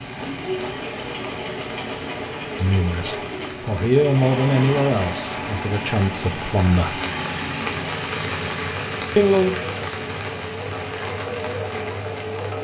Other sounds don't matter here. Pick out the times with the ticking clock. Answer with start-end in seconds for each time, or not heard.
not heard.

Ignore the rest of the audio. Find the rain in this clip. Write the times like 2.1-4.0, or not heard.
0.0-12.5.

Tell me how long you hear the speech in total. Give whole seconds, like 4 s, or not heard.
5 s.